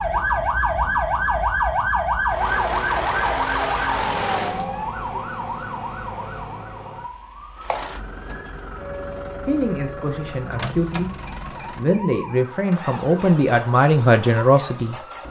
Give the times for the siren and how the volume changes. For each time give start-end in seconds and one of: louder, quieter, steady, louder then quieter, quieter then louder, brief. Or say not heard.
0.0-15.2 quieter.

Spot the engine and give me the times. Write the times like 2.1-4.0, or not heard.
2.2-4.7, 7.5-15.2.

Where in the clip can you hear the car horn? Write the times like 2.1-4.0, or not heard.
not heard.